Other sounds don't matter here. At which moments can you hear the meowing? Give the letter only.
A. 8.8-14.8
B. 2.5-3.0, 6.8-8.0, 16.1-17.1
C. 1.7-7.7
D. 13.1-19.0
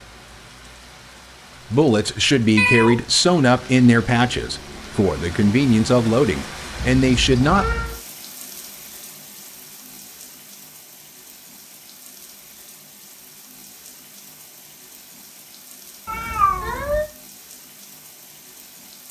B.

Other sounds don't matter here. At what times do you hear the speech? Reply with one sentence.
The speech can be heard from 1.7 to 7.7 s.